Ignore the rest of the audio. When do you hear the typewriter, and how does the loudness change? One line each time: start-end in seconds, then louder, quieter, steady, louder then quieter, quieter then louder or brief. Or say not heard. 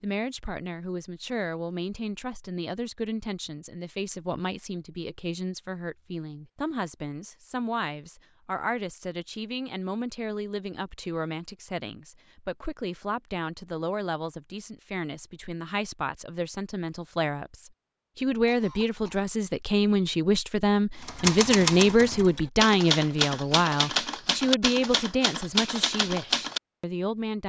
21.0-26.6 steady.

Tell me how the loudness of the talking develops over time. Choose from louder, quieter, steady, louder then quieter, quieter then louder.
louder.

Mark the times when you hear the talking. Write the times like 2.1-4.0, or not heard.
0.0-27.4.